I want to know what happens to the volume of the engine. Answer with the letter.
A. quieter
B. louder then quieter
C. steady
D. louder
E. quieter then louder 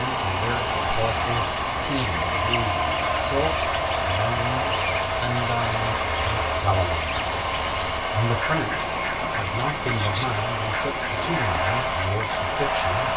C.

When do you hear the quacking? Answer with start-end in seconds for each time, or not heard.
0.3-12.5.